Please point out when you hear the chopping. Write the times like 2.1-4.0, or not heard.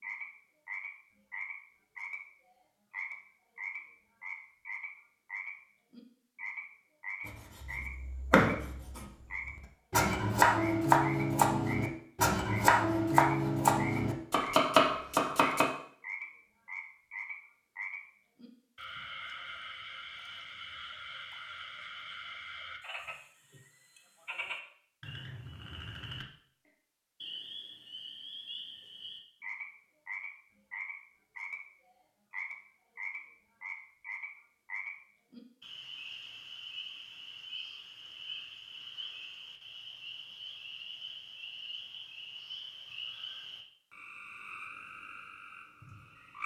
7.2-15.7.